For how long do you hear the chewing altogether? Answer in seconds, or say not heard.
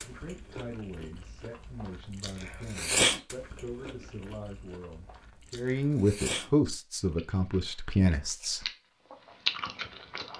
10 s.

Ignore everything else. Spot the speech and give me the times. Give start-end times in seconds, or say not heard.
0.0-8.7.